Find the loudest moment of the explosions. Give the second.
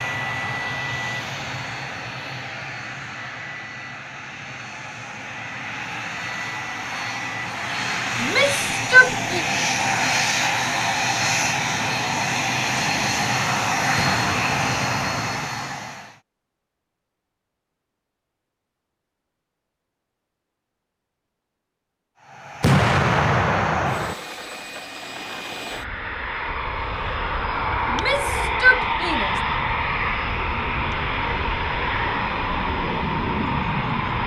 23 s.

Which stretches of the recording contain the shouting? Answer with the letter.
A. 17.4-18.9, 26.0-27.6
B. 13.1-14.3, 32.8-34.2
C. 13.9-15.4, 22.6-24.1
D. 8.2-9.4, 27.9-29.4
D.